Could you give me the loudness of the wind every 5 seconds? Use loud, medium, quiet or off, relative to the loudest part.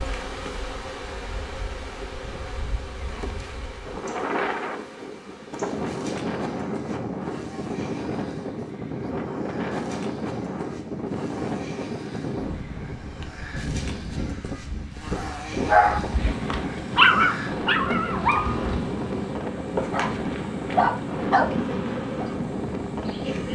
medium, loud, loud, loud, loud.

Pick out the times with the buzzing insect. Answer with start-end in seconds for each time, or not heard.
0.0-23.4.